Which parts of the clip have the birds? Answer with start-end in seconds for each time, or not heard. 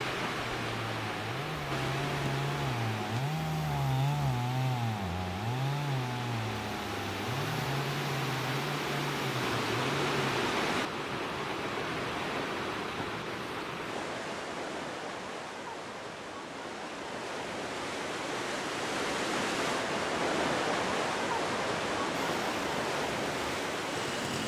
not heard.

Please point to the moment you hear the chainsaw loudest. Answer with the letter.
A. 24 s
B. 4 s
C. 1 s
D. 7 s
B.